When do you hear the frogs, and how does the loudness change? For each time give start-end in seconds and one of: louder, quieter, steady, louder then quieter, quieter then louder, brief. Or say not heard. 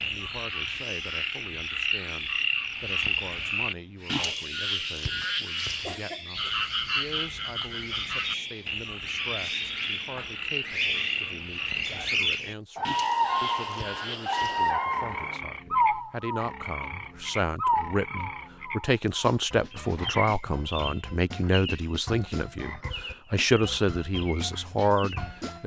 0.0-25.6 quieter.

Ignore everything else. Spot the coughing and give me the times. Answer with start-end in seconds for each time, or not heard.
5.8-6.5.